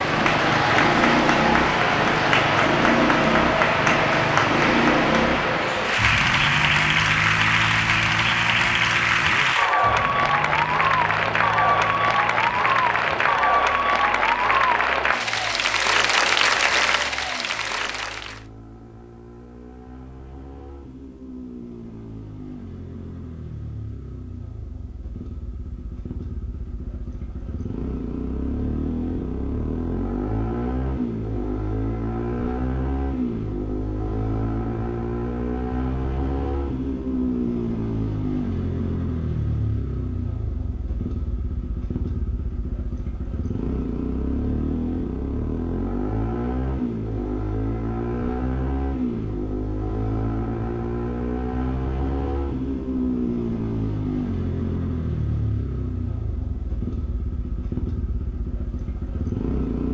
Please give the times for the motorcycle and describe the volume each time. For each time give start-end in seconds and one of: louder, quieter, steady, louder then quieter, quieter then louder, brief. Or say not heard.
0.0-59.8 quieter then louder.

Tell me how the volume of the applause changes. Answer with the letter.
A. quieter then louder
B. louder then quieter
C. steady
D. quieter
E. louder
C.